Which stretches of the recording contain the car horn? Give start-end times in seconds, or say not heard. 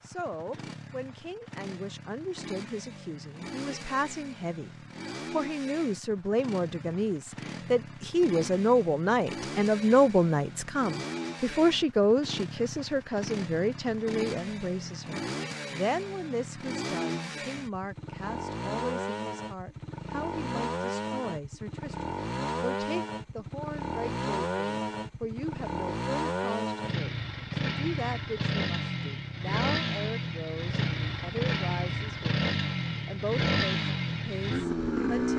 not heard.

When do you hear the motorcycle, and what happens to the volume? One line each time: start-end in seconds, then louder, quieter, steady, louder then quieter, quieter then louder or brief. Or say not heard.
0.0-35.3 louder.